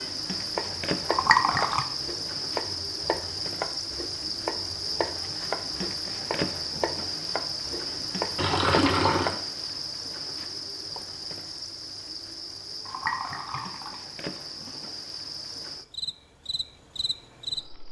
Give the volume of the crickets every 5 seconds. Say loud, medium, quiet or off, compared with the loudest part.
loud, loud, medium, medium.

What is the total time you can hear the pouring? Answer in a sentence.
The pouring can be heard for 4 seconds in total.